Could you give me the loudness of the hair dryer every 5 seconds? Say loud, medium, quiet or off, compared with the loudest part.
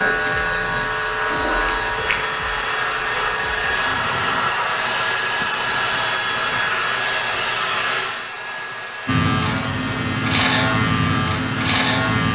loud, loud, medium.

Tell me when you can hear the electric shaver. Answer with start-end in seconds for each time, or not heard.
0.0-4.3, 9.1-12.3.